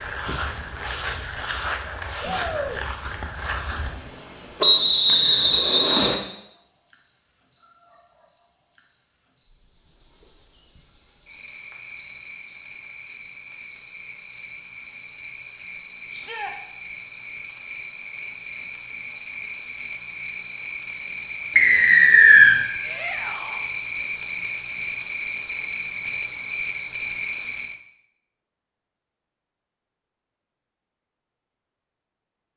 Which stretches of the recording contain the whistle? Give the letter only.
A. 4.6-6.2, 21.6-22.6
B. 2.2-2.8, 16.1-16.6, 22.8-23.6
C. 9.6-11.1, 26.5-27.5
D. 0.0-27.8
A.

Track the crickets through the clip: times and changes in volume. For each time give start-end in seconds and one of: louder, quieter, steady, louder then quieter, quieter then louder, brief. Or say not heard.
0.0-27.8 quieter then louder.